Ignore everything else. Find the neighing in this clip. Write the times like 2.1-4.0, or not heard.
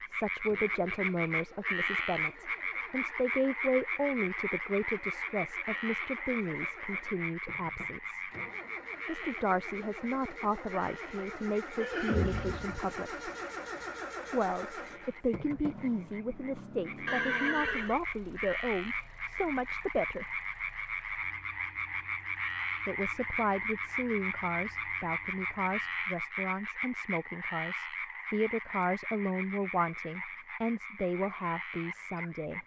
11.8-12.8, 17.1-18.0.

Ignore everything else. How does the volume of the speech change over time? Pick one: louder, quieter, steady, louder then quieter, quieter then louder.
steady.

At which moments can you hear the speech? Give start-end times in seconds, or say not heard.
0.1-8.2, 9.1-13.3, 14.3-20.4, 22.9-32.6.